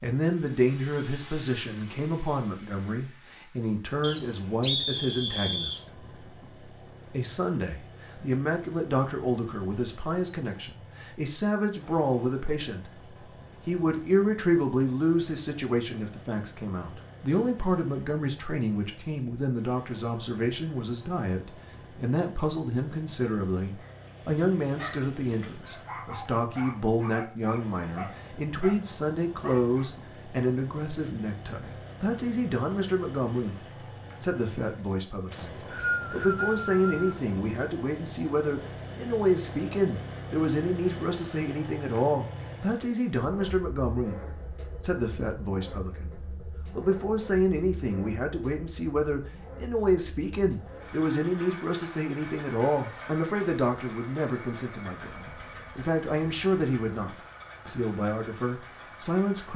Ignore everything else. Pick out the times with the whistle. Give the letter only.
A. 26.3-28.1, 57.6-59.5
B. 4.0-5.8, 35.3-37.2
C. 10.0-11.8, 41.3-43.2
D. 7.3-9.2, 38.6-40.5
B.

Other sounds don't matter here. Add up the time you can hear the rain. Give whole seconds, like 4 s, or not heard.
not heard.